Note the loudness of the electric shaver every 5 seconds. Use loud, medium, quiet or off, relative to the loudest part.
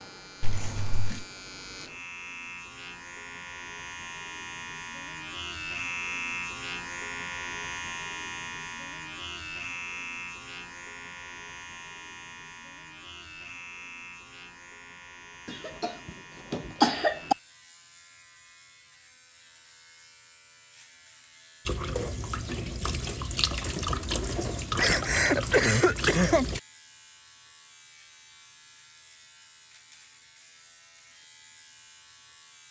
medium, loud, medium, quiet, quiet, quiet, quiet.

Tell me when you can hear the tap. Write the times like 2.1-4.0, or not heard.
21.6-26.6.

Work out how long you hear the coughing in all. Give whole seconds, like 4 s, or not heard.
4 s.